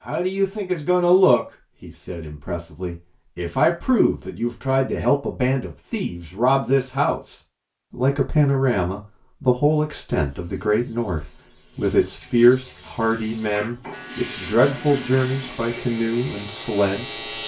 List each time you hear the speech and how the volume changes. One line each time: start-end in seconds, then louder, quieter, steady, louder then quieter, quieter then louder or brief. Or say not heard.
0.1-17.2 steady.